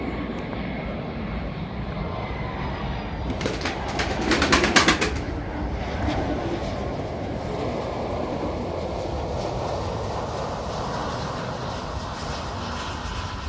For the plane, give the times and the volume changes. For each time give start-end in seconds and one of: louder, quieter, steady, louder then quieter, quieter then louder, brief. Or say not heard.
0.0-13.4 steady.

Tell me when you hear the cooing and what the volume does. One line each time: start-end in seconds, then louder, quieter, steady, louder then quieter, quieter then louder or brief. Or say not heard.
3.2-8.7 quieter.